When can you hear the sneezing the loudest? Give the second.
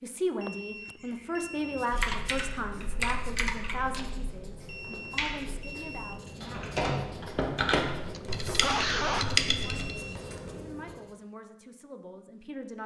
9 s.